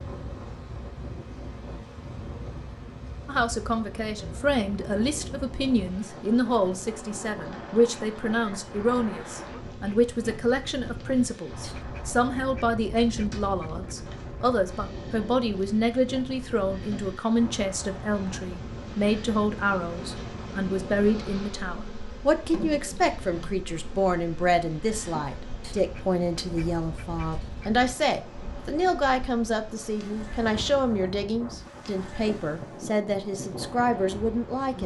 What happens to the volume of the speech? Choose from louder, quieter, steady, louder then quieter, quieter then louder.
steady.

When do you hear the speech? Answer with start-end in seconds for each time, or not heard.
3.2-34.8.